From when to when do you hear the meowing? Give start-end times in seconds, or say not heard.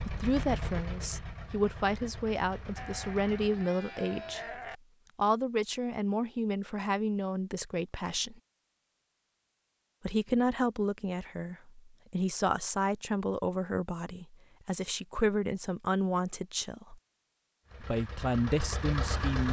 not heard.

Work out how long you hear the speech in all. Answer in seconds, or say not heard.
16 s.